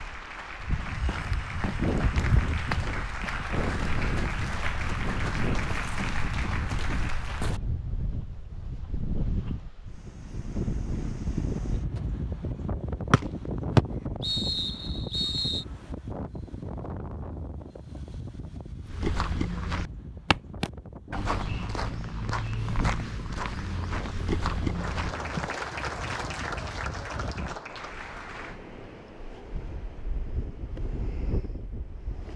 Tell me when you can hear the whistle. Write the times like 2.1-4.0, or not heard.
13.1-15.7.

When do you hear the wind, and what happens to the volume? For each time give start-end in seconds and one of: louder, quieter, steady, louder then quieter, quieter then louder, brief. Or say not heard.
0.0-32.3 quieter.